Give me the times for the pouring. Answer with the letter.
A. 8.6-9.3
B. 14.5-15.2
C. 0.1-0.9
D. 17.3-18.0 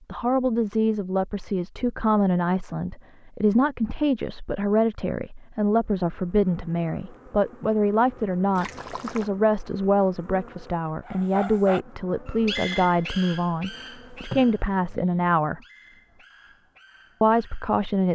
A.